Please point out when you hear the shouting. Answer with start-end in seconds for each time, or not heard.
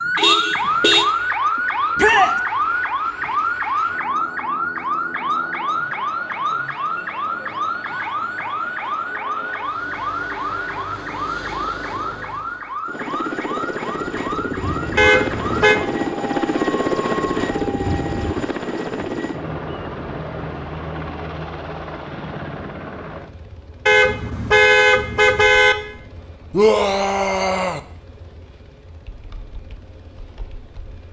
1.9-2.4, 26.5-27.8.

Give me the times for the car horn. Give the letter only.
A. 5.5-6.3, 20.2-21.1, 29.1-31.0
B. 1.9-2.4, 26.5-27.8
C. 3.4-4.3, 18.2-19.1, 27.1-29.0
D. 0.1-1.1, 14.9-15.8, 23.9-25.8
D.